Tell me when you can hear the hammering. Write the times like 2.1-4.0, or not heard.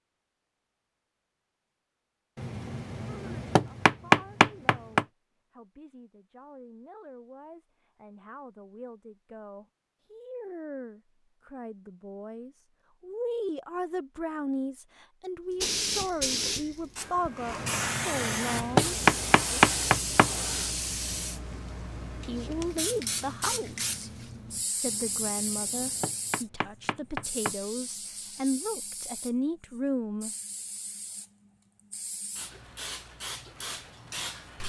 2.4-5.0, 17.6-20.3, 24.9-27.6.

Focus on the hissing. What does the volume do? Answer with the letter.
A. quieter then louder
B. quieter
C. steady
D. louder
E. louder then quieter
B.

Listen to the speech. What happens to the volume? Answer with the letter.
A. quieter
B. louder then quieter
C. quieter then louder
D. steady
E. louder
E.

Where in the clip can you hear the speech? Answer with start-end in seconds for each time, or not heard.
3.0-19.6, 22.2-30.3.